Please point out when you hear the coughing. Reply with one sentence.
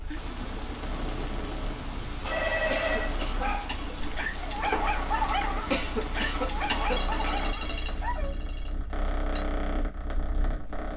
You can hear the coughing from 2.6 to 4.0 s and from 5.7 to 7.0 s.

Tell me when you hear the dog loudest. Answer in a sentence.
The loudest moment of the dog is at 5 seconds.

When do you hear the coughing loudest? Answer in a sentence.
The loudest moment of the coughing is at 6 seconds.